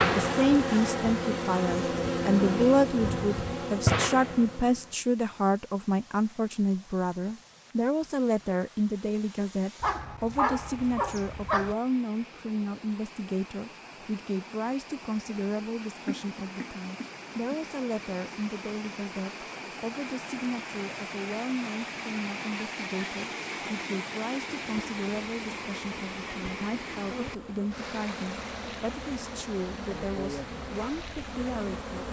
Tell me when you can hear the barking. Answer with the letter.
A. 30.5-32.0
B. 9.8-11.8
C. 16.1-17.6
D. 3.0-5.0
B.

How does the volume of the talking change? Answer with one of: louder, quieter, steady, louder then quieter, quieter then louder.
quieter.